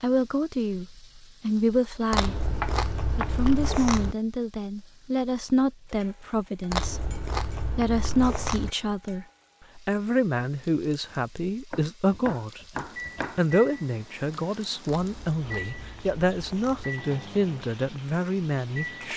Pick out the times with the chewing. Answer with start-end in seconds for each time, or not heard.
2.1-4.2, 6.7-8.7, 14.8-16.9.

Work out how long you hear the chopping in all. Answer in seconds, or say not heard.
4 s.